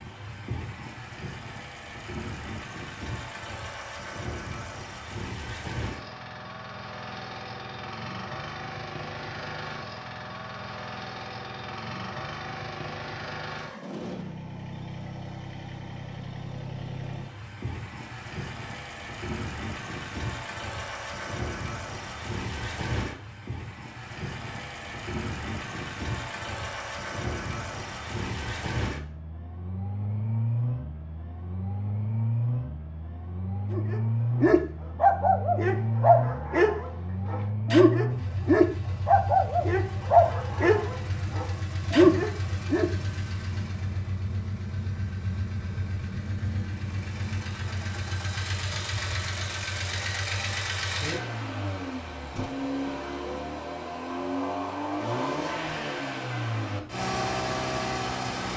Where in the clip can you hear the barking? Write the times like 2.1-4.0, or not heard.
33.7-42.9.